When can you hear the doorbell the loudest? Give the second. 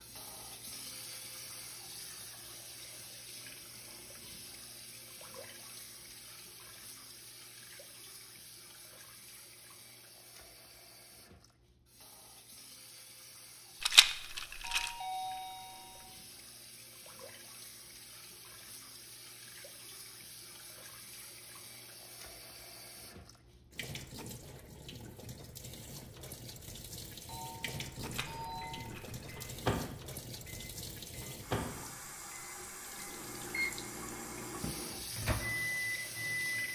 15 s.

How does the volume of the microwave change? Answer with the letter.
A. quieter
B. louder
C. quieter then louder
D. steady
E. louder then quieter
C.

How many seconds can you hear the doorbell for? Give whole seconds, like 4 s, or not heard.
3 s.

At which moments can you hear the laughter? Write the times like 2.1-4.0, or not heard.
not heard.